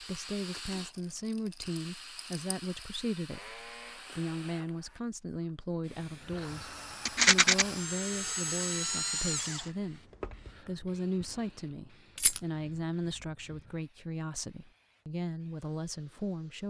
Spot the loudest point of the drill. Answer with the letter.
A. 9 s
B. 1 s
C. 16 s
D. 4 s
A.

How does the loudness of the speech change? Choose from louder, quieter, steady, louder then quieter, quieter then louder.
steady.